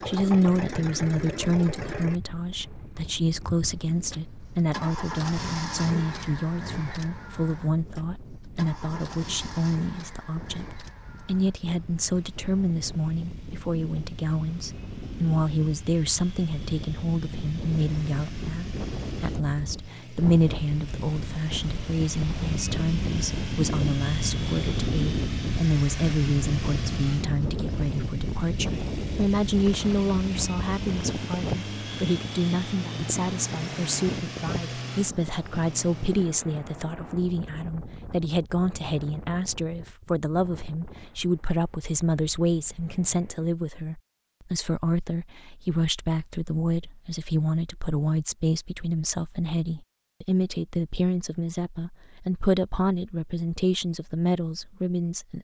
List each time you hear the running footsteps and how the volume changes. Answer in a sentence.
You can't hear the running footsteps here.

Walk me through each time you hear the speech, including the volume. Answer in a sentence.
The speech can be heard from 0.1 to 55.3 s, at a steady volume.